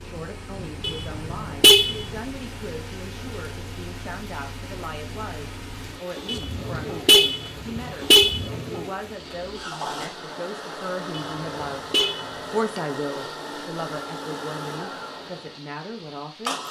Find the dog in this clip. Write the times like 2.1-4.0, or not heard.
not heard.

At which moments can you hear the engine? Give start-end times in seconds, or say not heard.
0.0-16.6.